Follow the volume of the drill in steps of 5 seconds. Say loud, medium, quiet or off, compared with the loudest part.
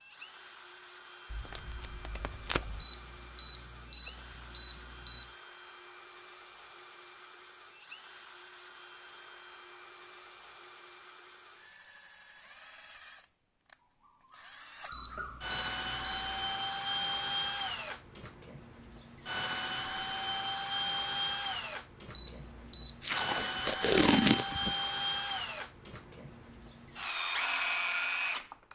quiet, quiet, quiet, loud, loud, loud.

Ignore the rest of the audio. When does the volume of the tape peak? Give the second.
24 s.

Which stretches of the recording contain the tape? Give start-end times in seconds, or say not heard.
1.3-2.9, 23.0-24.8.